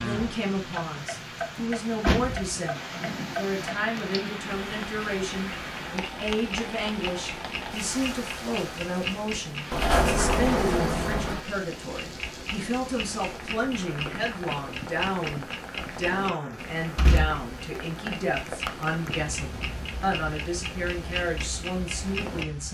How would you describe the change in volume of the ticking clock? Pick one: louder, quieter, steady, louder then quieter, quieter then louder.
steady.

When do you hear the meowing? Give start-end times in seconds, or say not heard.
not heard.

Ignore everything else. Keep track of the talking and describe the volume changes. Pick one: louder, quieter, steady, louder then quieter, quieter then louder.
steady.